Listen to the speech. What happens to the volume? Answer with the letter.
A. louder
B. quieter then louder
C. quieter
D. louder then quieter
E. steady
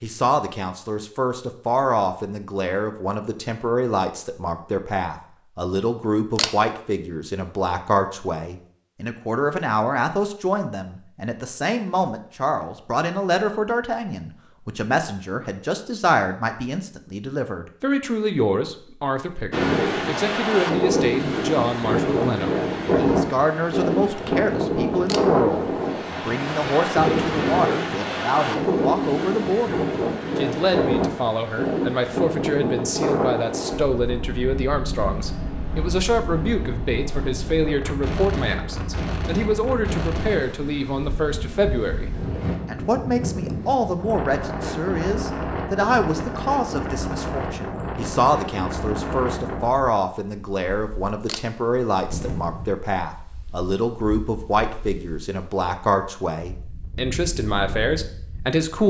E.